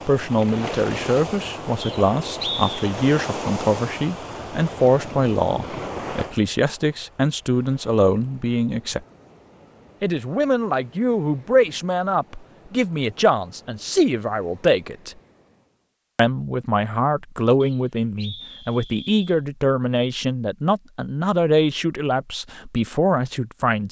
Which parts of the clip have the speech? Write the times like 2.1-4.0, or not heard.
0.1-9.0, 10.0-15.2, 16.1-23.8.